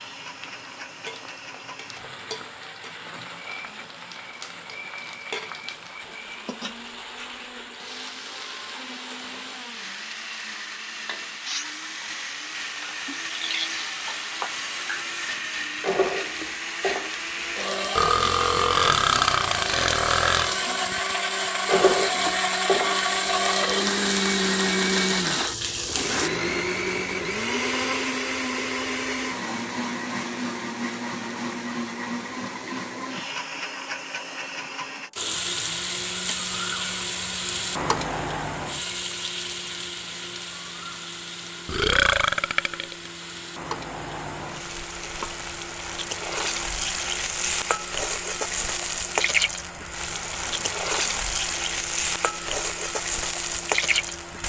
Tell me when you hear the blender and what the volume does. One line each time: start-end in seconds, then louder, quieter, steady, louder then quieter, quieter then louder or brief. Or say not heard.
0.0-54.4 louder then quieter.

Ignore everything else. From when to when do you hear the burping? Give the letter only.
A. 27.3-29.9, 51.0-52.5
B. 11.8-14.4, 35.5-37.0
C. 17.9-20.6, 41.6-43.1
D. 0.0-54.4
C.